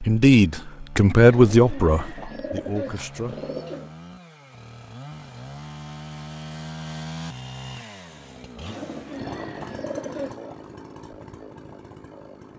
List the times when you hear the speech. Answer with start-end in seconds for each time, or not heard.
0.0-3.5.